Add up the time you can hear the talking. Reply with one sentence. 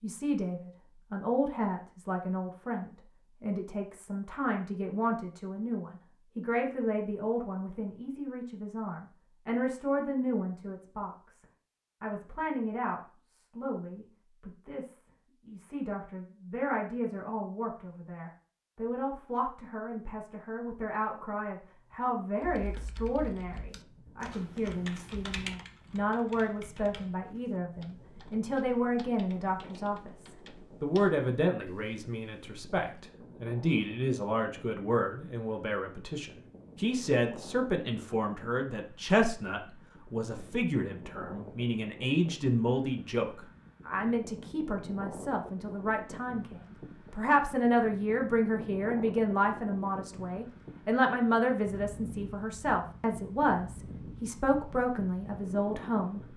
The talking can be heard for 56 seconds in total.